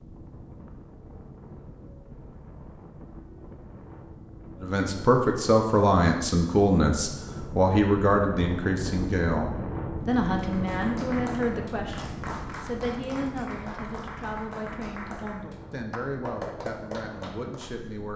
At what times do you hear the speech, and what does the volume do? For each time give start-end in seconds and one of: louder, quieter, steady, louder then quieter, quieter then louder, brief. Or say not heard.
4.6-18.1 quieter.